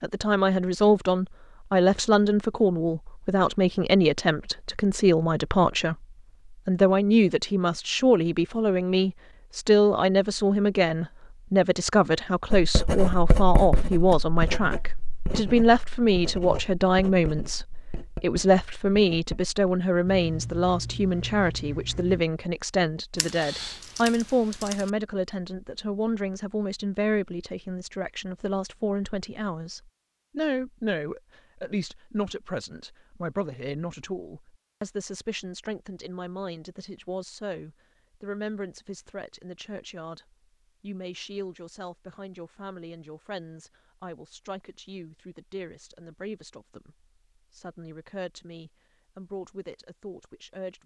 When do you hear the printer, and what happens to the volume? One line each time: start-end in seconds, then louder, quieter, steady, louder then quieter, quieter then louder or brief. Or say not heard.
not heard.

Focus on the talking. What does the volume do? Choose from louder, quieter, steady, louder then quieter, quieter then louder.
quieter.